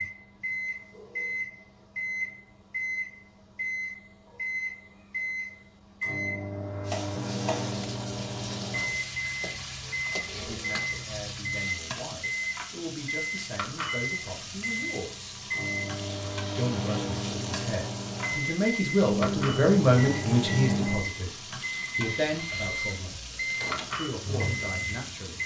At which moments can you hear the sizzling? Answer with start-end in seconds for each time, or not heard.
6.8-25.4.